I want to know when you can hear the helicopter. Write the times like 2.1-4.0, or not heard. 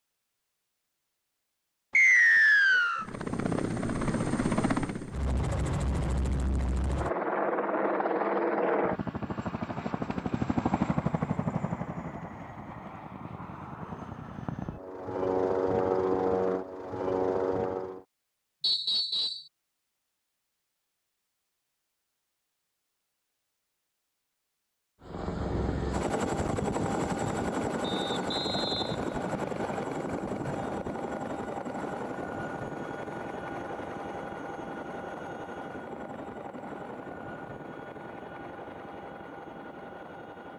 3.0-18.1, 25.0-40.5.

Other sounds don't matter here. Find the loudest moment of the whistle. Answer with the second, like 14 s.
2 s.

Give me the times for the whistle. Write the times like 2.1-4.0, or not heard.
1.9-3.0, 18.6-19.4, 27.8-29.9.